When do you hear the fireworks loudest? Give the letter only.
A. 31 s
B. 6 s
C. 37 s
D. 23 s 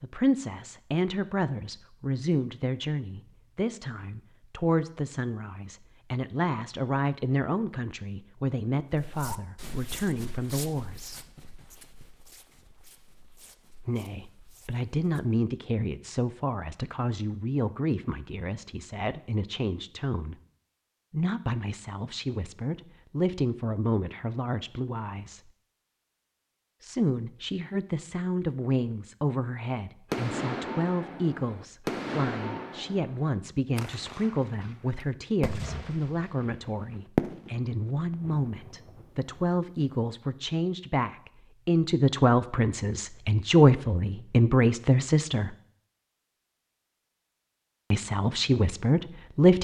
C.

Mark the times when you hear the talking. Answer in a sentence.
The talking can be heard from 0.0 to 11.2 s, from 13.8 to 20.4 s, from 21.1 to 25.4 s, from 26.8 to 45.5 s and from 47.9 to 49.5 s.